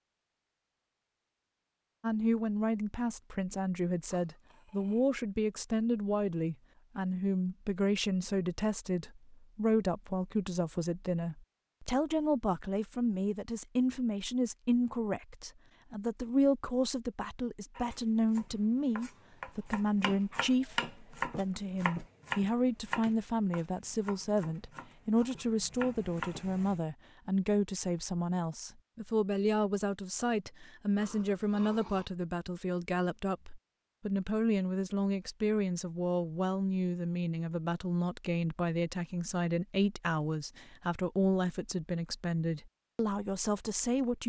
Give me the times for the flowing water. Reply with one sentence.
You can't hear the flowing water here.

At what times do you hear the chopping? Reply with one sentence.
The chopping can be heard from 17.8 to 26.8 s.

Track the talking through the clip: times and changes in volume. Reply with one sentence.
You can hear the talking from 2.0 to 44.2 s, at a steady volume.